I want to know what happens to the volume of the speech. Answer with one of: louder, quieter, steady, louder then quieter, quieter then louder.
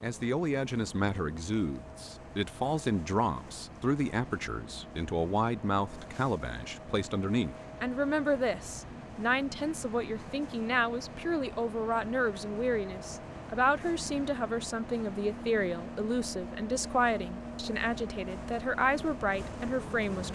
steady.